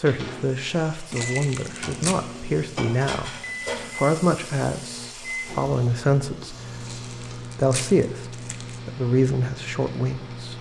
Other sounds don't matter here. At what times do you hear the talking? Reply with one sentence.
You can hear the talking from 0.0 to 3.4 s, from 4.0 to 6.5 s and from 7.5 to 10.5 s.